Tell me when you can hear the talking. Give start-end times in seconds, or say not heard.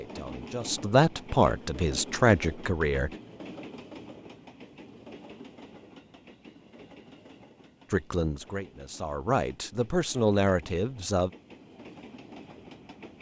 0.0-3.1, 7.9-11.3.